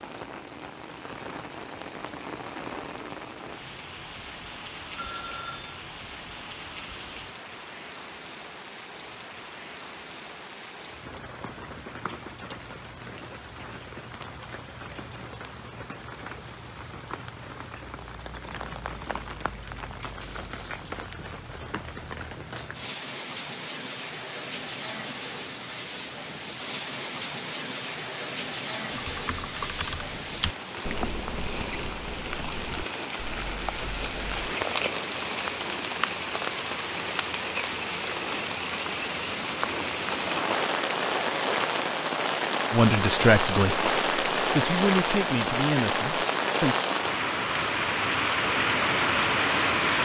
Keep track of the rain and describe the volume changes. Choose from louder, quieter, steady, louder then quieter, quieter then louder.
louder.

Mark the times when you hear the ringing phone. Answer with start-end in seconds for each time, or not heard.
5.0-5.8.